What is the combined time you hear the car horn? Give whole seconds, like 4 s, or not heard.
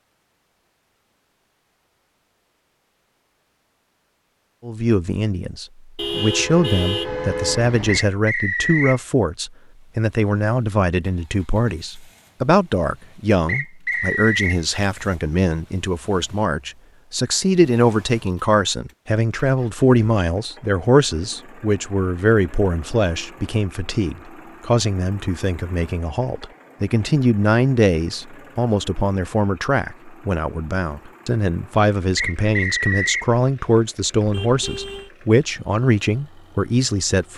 3 s.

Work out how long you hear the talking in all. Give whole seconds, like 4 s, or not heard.
33 s.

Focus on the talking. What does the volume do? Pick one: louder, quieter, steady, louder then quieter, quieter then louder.
steady.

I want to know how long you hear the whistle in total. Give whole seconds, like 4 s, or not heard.
3 s.